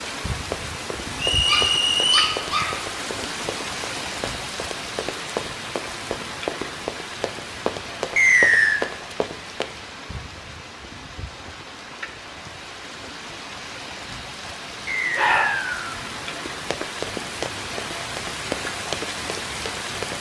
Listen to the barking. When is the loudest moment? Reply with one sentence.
The loudest moment of the barking is at 15 seconds.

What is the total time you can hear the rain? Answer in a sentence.
You can hear the rain for 20 seconds altogether.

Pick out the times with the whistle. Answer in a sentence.
The whistle can be heard from 1.1 to 2.4 s, from 8.2 to 8.8 s and from 14.8 to 15.9 s.